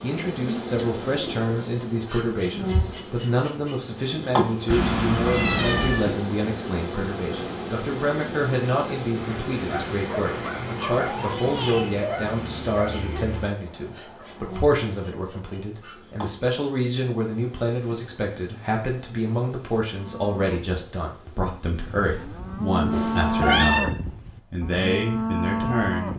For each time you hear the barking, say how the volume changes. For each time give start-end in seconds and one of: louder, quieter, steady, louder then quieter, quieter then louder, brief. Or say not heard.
9.2-16.2 quieter.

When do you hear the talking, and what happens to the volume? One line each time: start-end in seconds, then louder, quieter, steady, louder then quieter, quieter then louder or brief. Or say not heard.
0.0-26.1 steady.